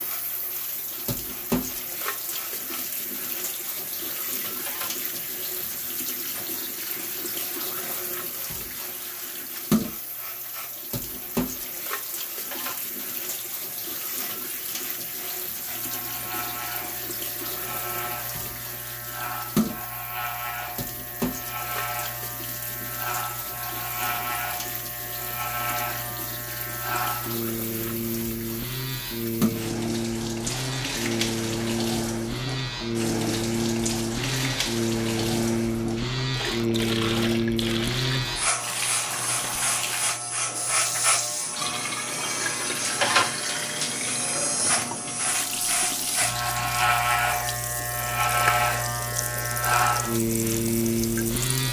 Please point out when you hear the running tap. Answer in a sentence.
The running tap can be heard from 0.0 to 51.6 s.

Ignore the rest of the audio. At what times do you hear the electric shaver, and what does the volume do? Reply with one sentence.
You can hear the electric shaver from 0.0 to 51.6 s, getting louder.